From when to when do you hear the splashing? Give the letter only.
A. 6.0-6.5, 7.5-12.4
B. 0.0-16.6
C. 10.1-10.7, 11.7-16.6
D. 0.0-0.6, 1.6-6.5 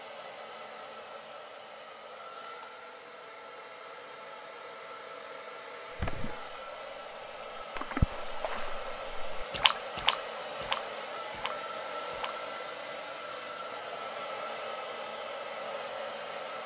A.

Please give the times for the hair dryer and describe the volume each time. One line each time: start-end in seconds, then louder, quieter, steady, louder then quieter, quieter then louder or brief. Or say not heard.
0.0-16.6 louder.